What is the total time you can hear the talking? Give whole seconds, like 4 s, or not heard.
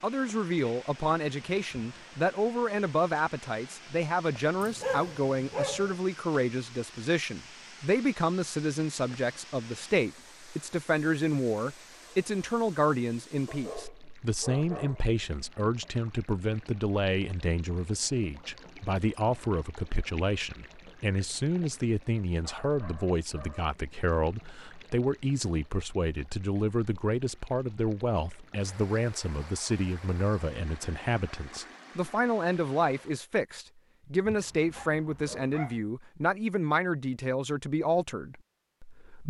39 s.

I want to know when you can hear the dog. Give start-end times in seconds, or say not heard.
4.6-6.0, 13.4-15.1, 22.4-23.8, 34.2-35.8.